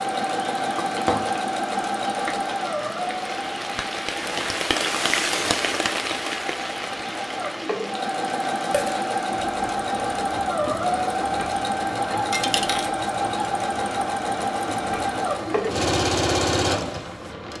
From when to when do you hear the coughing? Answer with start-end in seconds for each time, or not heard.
not heard.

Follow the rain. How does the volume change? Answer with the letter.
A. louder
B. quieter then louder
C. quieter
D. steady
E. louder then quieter
E.